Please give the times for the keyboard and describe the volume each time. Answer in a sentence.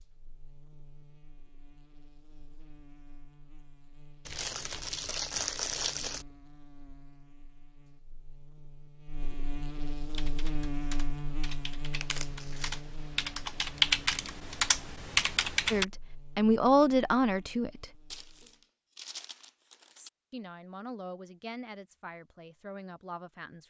You can hear the keyboard from 10.1 to 15.8 s, getting louder.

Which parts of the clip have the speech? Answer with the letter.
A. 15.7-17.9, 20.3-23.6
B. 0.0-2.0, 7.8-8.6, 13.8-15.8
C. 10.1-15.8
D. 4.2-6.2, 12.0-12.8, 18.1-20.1
A.